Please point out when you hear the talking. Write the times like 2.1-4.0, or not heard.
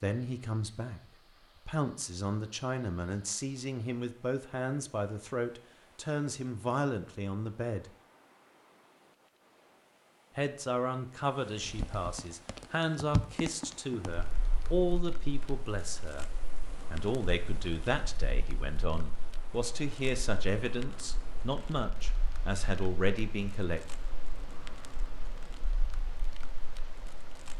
0.0-1.0, 1.6-7.8, 10.3-16.2, 16.9-23.8.